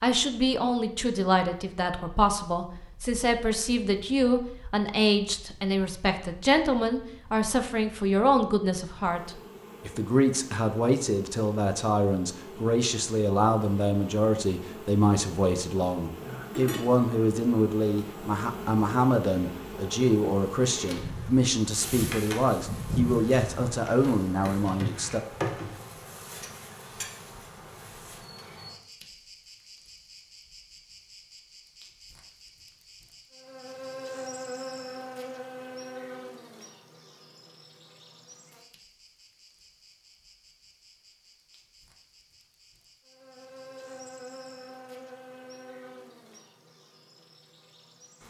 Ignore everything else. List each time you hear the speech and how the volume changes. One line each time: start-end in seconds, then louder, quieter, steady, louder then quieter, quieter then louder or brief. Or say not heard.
0.0-25.2 steady.